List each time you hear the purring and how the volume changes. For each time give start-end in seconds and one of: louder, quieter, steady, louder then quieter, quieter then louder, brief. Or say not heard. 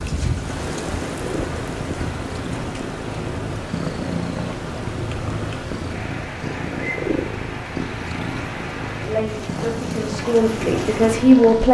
0.0-11.6 steady.